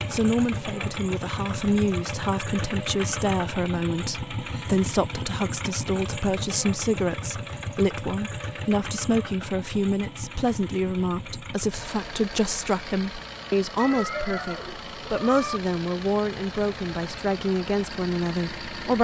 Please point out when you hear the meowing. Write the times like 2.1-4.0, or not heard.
13.8-15.6.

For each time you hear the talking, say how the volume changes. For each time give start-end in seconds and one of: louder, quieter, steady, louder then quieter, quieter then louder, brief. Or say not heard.
0.1-18.9 steady.